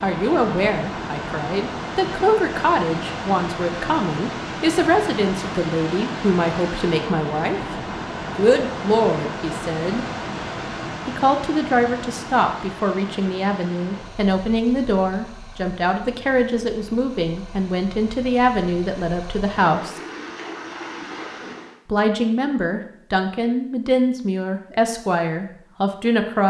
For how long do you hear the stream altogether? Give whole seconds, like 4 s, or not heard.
22 s.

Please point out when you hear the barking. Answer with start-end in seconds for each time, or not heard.
not heard.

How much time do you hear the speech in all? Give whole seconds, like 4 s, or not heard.
23 s.